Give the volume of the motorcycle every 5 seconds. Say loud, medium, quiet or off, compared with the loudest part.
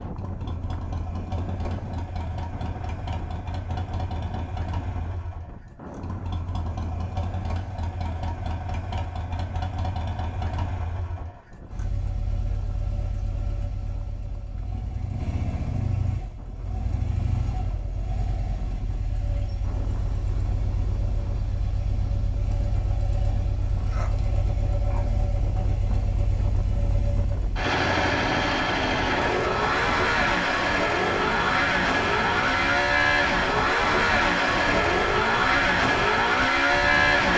quiet, quiet, quiet, quiet, quiet, medium, loud, loud.